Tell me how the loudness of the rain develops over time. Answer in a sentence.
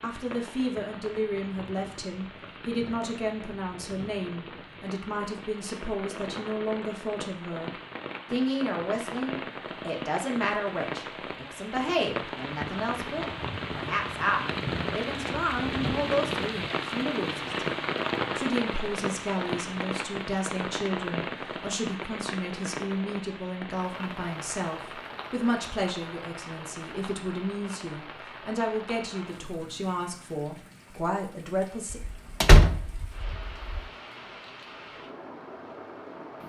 The loudness of the rain goes up, then down.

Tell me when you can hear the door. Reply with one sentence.
The door can be heard from 31.9 to 33.8 s.